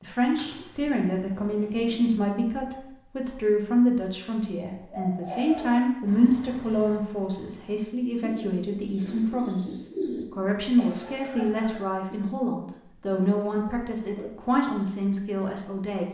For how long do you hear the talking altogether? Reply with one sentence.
You can hear the talking for 16 seconds altogether.